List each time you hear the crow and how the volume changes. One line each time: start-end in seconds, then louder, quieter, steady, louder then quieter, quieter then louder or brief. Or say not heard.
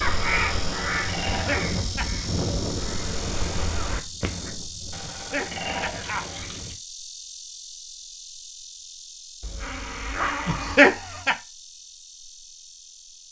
0.0-4.5 quieter then louder.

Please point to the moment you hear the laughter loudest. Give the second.
11 s.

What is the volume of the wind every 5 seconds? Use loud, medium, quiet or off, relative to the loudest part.
loud, medium, off.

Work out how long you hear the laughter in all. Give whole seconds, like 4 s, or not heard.
3 s.